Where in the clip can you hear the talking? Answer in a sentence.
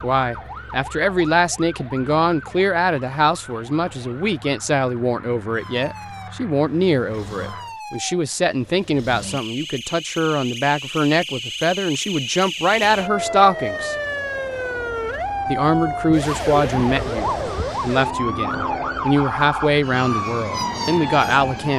The talking can be heard from 0.0 to 13.9 s and from 15.4 to 21.7 s.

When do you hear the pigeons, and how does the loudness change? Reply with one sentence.
The pigeons can't be heard in this clip.